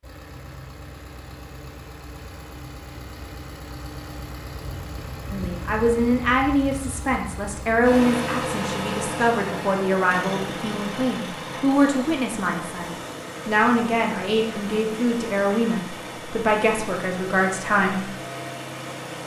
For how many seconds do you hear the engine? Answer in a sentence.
The engine can be heard for 19 seconds in total.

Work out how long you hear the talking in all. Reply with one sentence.
The talking can be heard for 13 seconds in total.